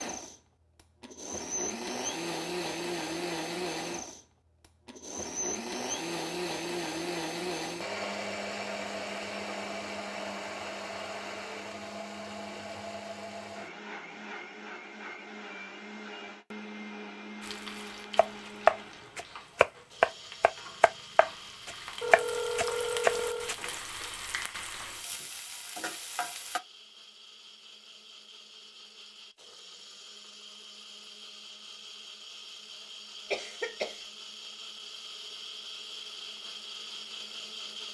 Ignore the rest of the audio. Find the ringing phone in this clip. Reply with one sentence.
You can hear the ringing phone from 22.0 to 23.6 s.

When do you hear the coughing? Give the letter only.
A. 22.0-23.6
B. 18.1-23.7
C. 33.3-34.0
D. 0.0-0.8
C.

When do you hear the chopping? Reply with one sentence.
You can hear the chopping from 18.1 to 23.7 s.